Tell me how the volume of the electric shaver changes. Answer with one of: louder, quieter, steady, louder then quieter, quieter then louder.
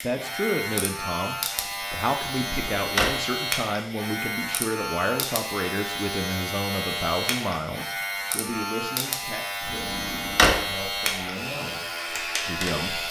steady.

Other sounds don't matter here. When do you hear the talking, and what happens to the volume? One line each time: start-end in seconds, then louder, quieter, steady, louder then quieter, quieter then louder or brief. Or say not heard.
0.0-13.0 quieter.